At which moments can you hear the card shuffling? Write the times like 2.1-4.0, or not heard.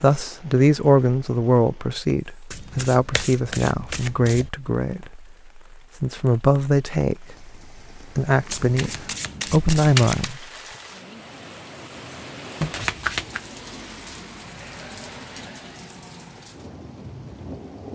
2.5-4.5, 8.4-10.3, 12.6-13.4.